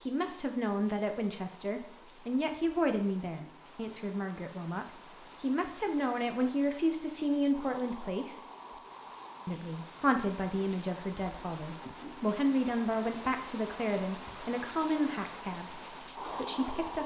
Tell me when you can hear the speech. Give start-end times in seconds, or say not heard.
0.1-8.4, 9.4-17.0.